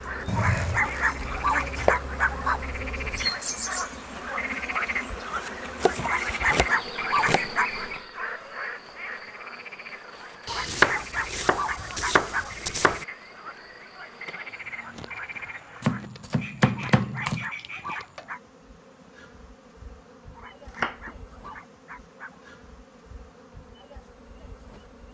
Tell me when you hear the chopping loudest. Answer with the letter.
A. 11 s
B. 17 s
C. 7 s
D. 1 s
A.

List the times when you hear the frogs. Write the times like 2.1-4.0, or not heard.
0.0-18.1.